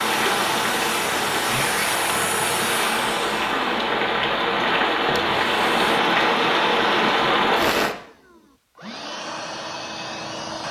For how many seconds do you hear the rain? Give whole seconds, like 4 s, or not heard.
8 s.